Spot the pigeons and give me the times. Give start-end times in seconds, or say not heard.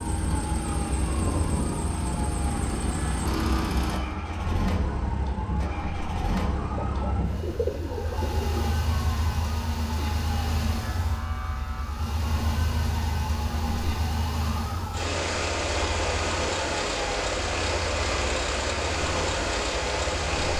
6.8-8.8.